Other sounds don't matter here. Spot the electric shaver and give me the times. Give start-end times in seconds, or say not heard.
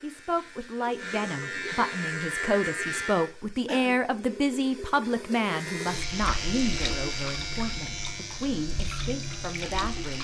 0.0-3.3, 5.5-10.1.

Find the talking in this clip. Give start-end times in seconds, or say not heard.
0.0-10.1.